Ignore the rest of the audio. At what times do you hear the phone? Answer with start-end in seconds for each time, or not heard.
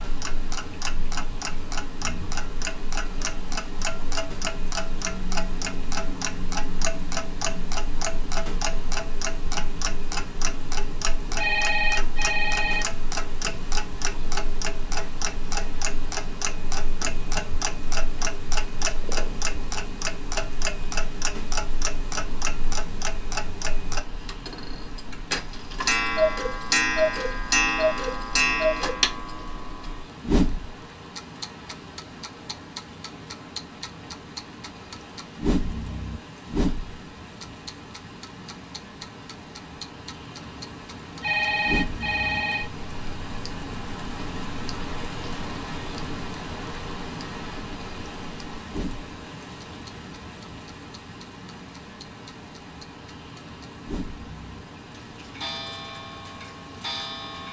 11.3-12.8, 41.2-42.7.